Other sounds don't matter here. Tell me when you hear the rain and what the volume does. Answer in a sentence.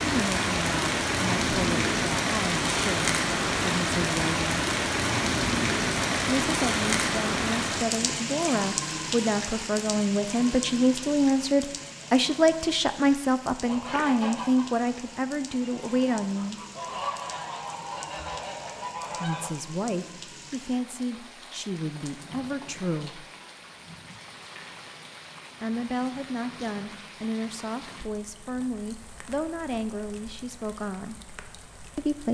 You can hear the rain from 0.0 to 32.2 s, getting quieter.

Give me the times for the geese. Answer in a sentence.
You can hear the geese from 13.6 to 19.5 s.